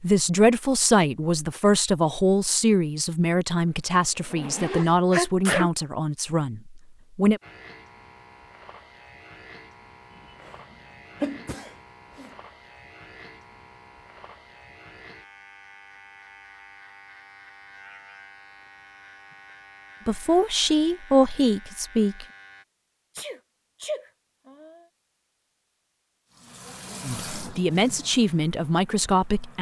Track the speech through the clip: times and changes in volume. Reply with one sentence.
The speech can be heard from 0.0 to 7.4 s, getting quieter; briefly from 20.1 to 22.2 s; and briefly from 27.0 to 29.5 s.